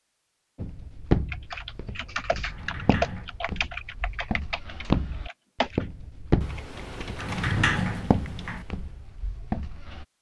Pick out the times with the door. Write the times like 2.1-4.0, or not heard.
2.5-3.3, 7.2-8.7.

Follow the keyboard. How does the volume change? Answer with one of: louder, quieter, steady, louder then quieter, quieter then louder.
quieter.